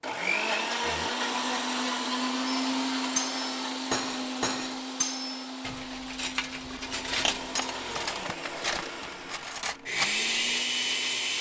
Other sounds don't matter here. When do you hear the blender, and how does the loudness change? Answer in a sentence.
The blender can be heard from 0.0 to 11.3 s, getting quieter then louder.